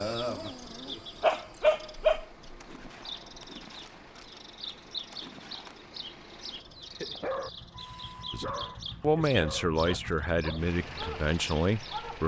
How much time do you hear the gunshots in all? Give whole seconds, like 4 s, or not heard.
3 s.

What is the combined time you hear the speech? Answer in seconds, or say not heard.
4 s.